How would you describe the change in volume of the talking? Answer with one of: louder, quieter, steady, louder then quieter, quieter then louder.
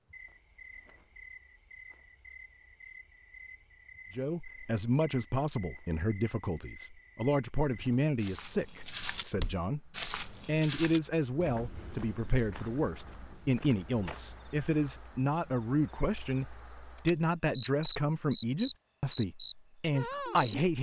steady.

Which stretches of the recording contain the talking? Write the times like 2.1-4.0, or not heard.
4.1-20.7.